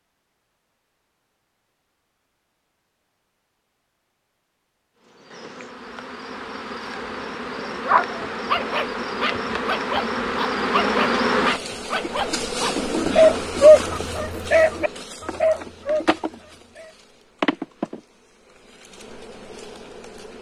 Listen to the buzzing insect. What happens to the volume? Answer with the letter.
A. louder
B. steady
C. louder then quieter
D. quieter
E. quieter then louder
C.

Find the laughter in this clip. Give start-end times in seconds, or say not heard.
not heard.